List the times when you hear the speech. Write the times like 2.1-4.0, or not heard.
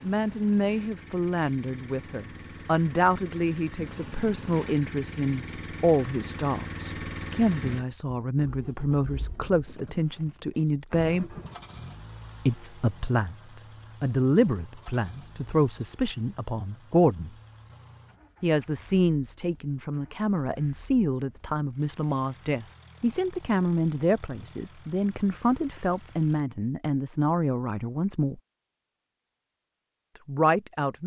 0.0-11.3, 12.4-17.3, 18.4-28.4, 30.2-31.0.